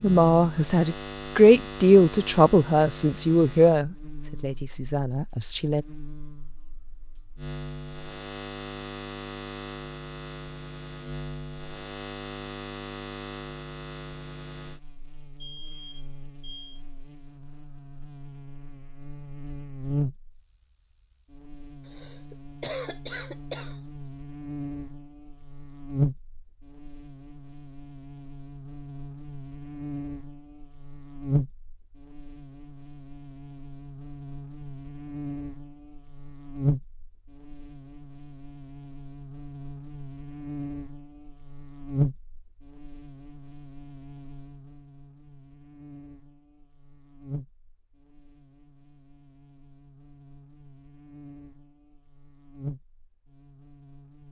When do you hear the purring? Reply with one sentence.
You can't hear the purring here.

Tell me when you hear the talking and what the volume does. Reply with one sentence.
The talking can be heard from 0.0 to 5.8 s, getting louder then quieter.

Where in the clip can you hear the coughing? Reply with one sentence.
The coughing can be heard from 21.9 to 23.8 s.